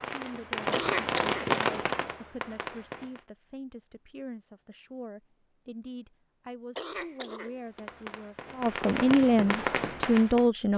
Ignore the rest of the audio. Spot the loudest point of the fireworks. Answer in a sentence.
The loudest moment of the fireworks is at 2 seconds.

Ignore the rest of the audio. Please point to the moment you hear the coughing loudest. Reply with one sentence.
The volume of the coughing peaks at 1 second.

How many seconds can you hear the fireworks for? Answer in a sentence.
You can hear the fireworks for 6 seconds altogether.